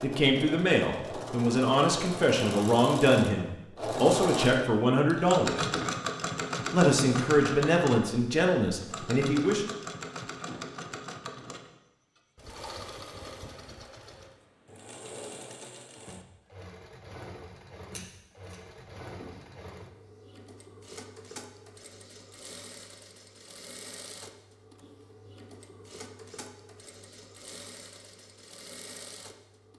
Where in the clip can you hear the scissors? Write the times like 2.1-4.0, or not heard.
17.9-19.4.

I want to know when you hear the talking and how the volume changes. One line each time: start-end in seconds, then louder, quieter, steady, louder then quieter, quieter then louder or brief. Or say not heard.
0.0-5.7 steady
6.7-9.7 brief.